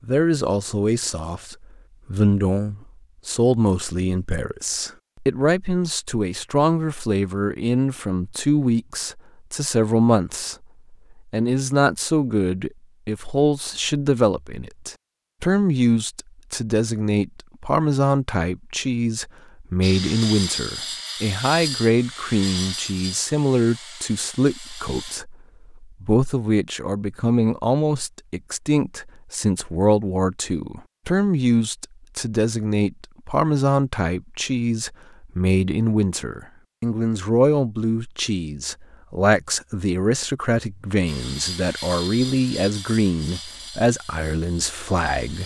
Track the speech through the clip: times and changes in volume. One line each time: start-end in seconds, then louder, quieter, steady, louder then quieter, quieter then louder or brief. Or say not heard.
0.0-45.4 steady.